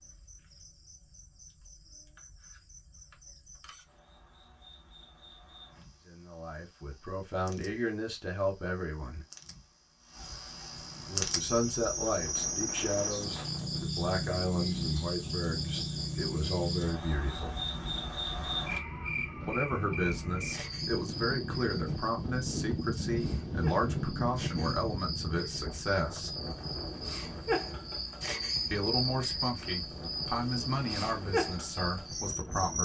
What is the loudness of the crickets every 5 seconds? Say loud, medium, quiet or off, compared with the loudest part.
quiet, quiet, loud, loud, medium, loud, loud.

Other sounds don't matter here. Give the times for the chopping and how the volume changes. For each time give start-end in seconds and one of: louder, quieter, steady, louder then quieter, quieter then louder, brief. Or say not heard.
not heard.